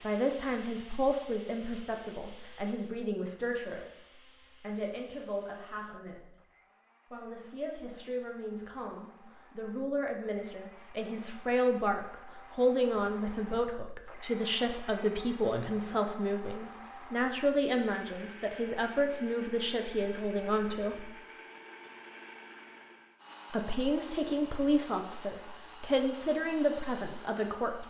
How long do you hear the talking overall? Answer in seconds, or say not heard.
25 s.